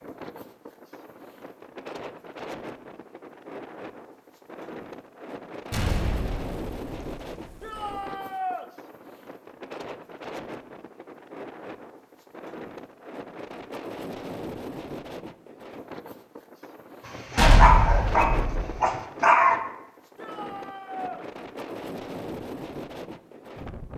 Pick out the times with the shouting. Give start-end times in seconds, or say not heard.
7.6-8.7, 20.1-21.2.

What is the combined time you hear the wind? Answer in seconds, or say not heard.
24 s.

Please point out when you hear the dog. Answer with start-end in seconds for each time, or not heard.
17.1-19.6.